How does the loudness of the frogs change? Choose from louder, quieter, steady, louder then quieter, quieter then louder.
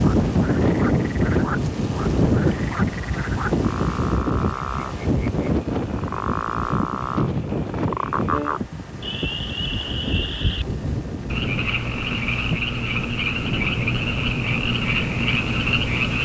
louder.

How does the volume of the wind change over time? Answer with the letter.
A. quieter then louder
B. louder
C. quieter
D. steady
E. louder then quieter
C.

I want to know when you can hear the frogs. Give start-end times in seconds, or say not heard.
0.0-16.2.